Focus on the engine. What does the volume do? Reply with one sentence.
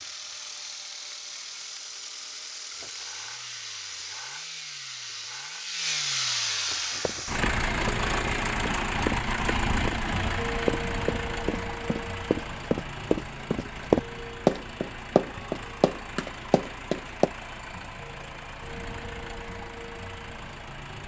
The volume of the engine goes up, then down.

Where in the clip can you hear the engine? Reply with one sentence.
The engine can be heard from 0.0 to 21.0 s.